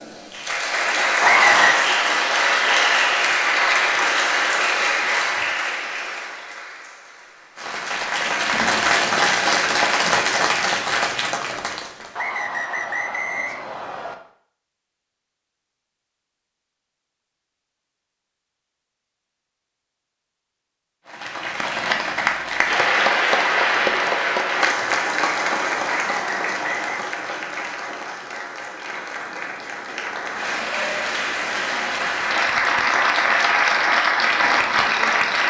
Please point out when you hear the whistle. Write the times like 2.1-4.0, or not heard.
1.2-1.9, 12.2-14.2, 26.1-26.9.